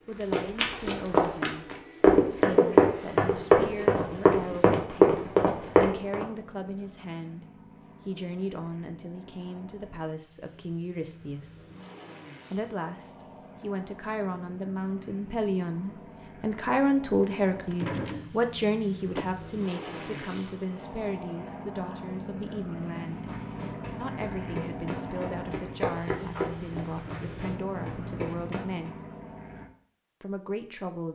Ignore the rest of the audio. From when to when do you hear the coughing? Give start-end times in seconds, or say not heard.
not heard.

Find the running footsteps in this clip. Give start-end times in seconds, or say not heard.
0.2-6.2, 23.1-28.9.